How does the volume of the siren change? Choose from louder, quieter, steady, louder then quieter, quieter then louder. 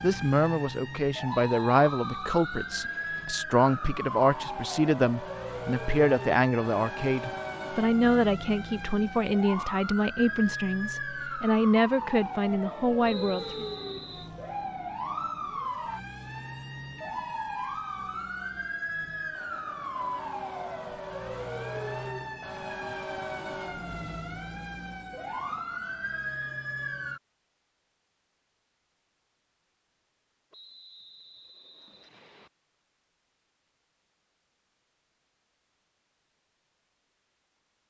steady.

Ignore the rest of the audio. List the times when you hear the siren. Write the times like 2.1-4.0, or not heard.
0.0-27.2.